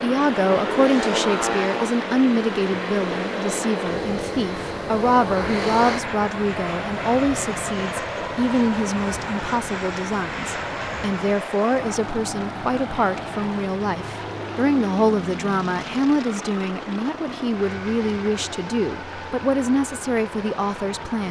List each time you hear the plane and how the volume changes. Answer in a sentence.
You can hear the plane from 0.0 to 21.2 s, getting quieter.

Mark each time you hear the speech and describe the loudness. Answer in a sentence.
You can hear the speech from 0.0 to 21.2 s, at a steady volume.